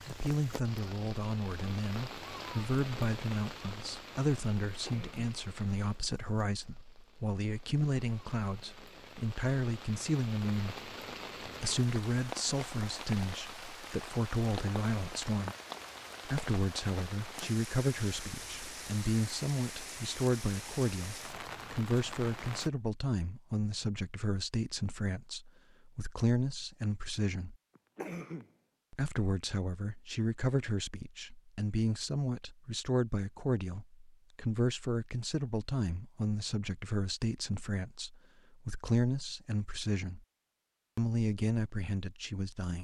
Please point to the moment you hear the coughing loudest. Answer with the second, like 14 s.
28 s.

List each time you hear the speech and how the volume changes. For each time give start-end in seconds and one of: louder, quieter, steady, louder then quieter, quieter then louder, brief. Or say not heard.
0.1-15.6 steady
16.2-27.6 steady
28.9-40.2 steady
41.0-42.7 brief.